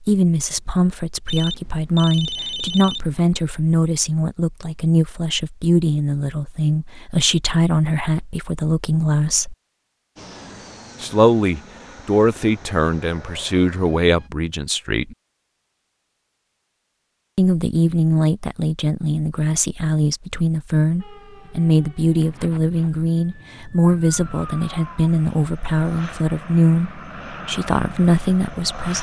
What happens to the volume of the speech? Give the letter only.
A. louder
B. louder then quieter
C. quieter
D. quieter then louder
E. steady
E.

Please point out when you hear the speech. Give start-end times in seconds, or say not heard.
0.0-9.6, 11.0-15.2, 17.4-28.9.